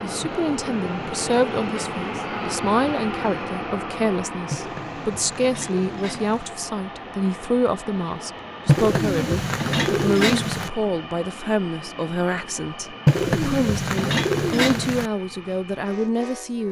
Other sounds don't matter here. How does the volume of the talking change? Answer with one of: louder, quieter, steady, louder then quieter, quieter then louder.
steady.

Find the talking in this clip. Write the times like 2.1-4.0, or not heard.
0.0-16.6.